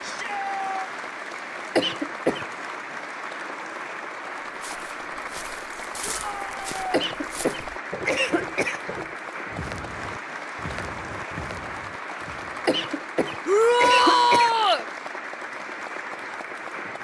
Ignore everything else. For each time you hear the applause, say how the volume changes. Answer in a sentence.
The applause can be heard from 0.0 to 16.9 s, at a steady volume.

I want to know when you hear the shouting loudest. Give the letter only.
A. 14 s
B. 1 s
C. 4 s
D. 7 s
A.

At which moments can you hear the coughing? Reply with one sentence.
The coughing can be heard from 1.8 to 2.5 s, from 6.9 to 8.8 s and from 12.7 to 14.6 s.